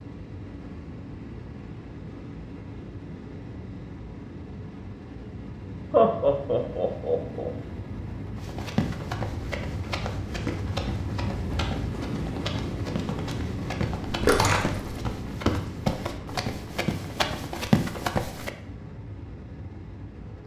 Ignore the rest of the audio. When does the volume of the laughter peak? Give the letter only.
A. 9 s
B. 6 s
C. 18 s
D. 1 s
B.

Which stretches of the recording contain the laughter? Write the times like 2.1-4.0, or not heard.
5.9-7.5.